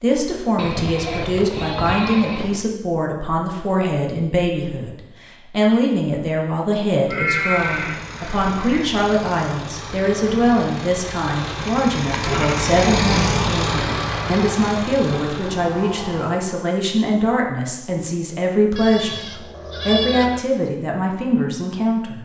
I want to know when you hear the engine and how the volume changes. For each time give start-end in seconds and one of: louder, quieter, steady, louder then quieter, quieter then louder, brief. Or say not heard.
7.3-16.4 louder then quieter.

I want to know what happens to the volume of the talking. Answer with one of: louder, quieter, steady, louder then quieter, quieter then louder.
steady.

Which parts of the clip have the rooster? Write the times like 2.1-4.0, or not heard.
not heard.